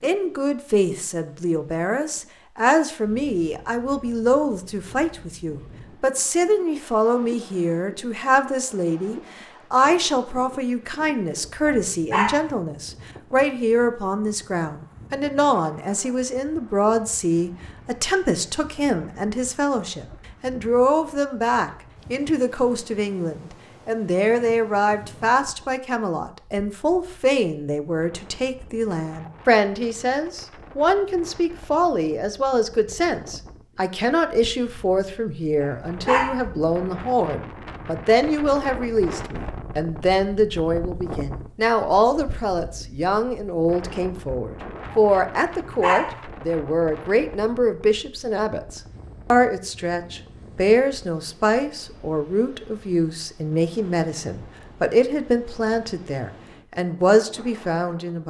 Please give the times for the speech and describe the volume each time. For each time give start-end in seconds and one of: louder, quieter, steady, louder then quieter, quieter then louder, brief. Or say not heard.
0.0-58.2 steady.